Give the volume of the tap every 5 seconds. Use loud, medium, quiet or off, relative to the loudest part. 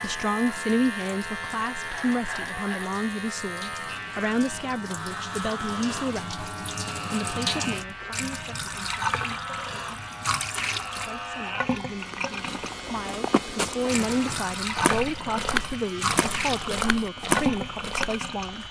quiet, loud, loud, loud.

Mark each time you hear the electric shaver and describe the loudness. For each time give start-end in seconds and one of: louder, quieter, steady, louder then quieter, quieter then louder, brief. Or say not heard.
0.0-18.6 quieter.